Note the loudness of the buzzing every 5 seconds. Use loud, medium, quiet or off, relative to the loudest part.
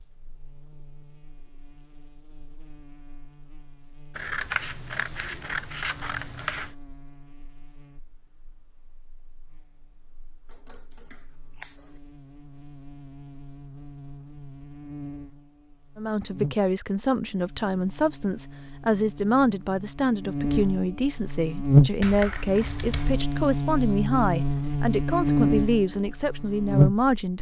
quiet, quiet, quiet, quiet, loud, loud.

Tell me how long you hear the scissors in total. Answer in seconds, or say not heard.
5 s.